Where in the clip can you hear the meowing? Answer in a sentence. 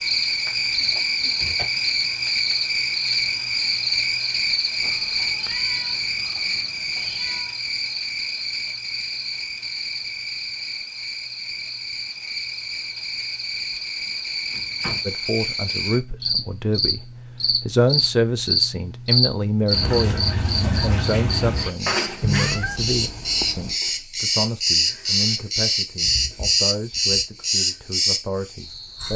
The meowing can be heard from 4.8 to 7.5 s and from 22.2 to 23.8 s.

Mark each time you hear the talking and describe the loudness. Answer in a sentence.
You can hear the talking from 15.1 to 29.1 s, getting quieter.